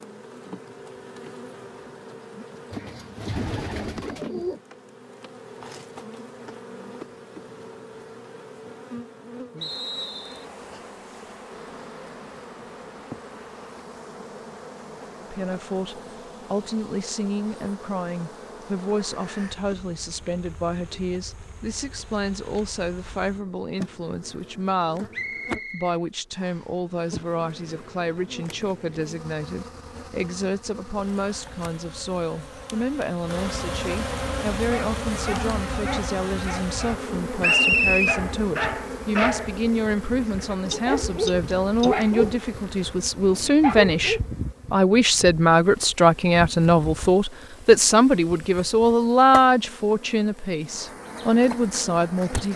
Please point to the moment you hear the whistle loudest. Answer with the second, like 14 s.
38 s.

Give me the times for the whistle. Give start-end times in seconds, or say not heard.
9.6-10.4, 25.1-26.6, 37.4-38.2.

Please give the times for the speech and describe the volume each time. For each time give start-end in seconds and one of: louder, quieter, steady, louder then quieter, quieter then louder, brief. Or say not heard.
15.2-52.5 louder.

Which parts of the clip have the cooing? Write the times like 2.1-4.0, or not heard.
2.7-4.6, 40.6-42.4.